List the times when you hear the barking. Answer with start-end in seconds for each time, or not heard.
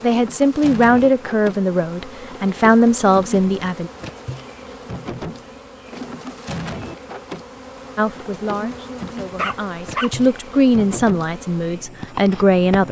9.3-10.3.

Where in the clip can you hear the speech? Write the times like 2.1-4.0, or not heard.
0.0-3.9, 8.0-12.8.